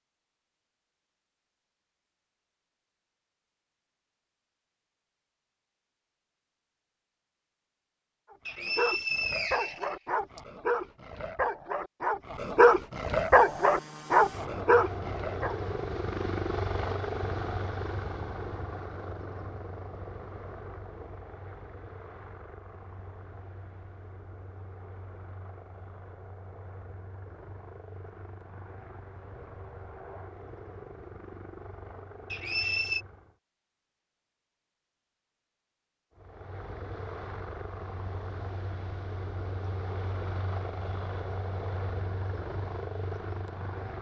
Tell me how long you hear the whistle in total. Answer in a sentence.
The whistle can be heard for 3 seconds in total.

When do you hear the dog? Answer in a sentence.
The dog can be heard from 8.3 to 15.6 s.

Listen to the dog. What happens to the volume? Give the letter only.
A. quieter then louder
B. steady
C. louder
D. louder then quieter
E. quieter
C.